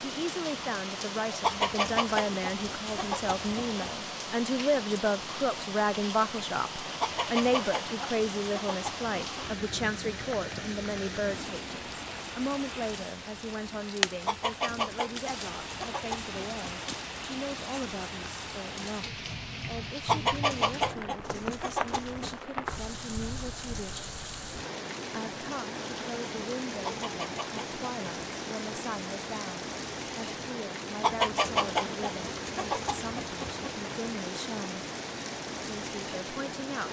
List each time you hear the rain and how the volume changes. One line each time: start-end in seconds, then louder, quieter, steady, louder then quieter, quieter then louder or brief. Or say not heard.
0.0-36.8 steady.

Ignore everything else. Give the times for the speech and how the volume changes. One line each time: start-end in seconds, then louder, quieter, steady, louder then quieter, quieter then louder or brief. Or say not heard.
0.0-24.1 quieter
25.1-34.9 steady
35.8-36.8 brief.